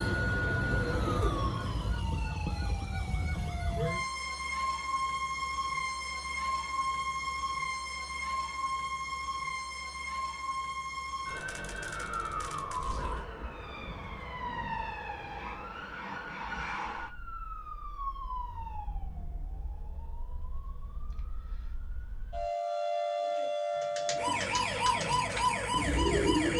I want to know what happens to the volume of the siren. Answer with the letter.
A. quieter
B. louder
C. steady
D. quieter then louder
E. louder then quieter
D.